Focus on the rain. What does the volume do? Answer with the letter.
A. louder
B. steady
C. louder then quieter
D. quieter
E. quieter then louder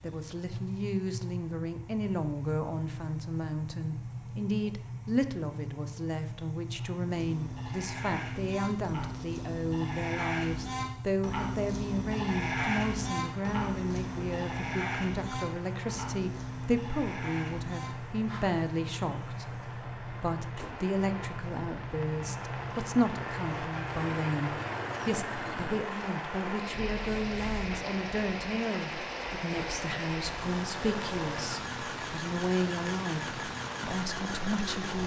A.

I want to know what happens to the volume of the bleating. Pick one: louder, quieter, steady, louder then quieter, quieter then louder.
louder then quieter.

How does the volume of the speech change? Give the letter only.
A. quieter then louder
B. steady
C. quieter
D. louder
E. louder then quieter
B.